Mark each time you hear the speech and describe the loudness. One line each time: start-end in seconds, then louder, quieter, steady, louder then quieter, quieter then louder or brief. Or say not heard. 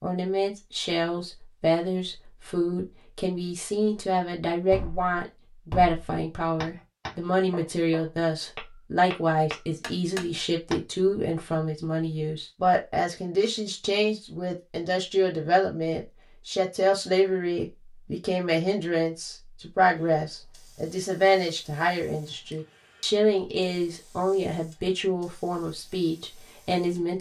0.0-27.1 steady.